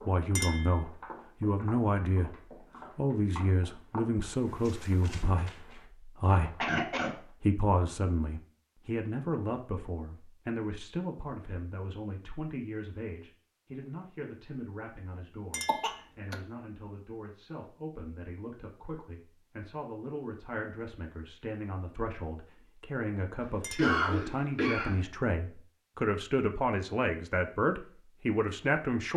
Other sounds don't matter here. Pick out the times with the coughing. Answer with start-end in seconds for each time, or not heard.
6.6-7.2, 15.7-16.4, 23.4-25.0.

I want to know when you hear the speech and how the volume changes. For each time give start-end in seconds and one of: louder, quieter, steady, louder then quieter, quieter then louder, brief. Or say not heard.
0.1-2.4 brief
3.0-29.1 quieter then louder.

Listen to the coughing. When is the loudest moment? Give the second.
24 s.